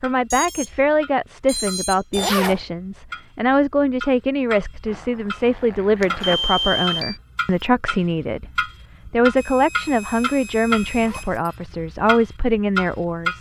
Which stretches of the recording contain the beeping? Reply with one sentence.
You can hear the beeping from 0.3 to 0.8 s, from 1.4 to 2.3 s, from 6.2 to 7.2 s and from 9.3 to 11.3 s.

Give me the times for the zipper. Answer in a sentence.
The zipper can be heard from 2.1 to 2.6 s, from 4.8 to 6.4 s and from 11.0 to 11.4 s.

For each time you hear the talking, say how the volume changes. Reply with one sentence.
The talking can be heard from 0.0 to 13.3 s, at a steady volume.